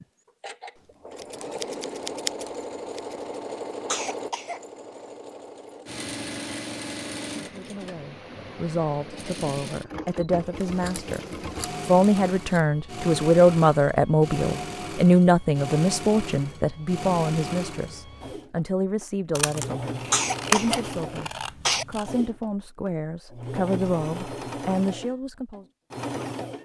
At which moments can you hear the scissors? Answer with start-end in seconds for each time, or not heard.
1.1-3.1, 10.6-12.6, 19.4-22.1.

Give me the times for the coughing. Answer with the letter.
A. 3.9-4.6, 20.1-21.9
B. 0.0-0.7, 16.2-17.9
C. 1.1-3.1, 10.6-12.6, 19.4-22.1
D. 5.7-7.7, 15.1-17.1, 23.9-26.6
A.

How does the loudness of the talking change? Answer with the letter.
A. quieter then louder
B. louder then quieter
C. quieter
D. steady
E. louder
B.